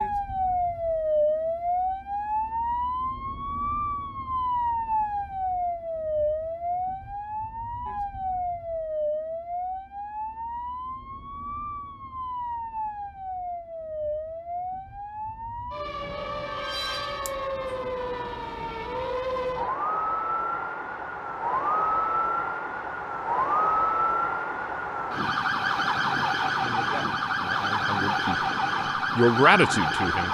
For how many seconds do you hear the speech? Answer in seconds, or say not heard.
3 s.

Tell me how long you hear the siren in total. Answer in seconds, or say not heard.
30 s.